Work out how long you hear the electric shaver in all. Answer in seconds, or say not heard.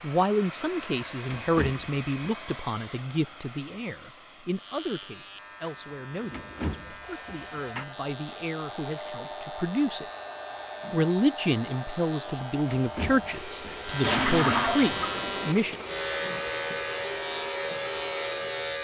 14 s.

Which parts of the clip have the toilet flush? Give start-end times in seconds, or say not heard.
14.0-15.2.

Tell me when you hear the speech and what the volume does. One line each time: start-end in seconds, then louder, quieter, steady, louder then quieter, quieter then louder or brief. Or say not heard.
0.0-10.1 quieter
10.9-15.8 steady.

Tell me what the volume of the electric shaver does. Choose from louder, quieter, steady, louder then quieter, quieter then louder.
louder.